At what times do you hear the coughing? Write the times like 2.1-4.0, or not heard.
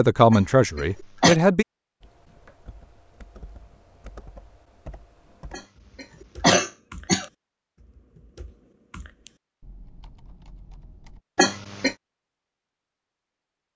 0.3-1.4, 5.5-7.2, 11.3-11.9.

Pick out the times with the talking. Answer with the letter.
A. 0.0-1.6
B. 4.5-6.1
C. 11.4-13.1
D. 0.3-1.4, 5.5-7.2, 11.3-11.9
A.